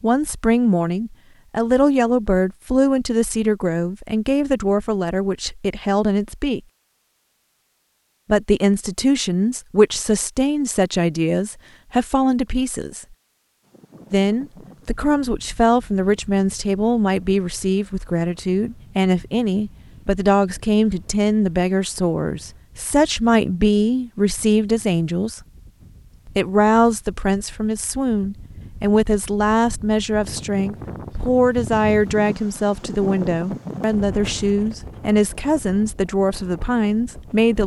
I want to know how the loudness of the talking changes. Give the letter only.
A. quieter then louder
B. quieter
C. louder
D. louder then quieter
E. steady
E.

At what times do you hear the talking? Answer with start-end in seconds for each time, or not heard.
0.0-6.6, 8.2-13.1, 14.1-25.4, 26.2-37.6.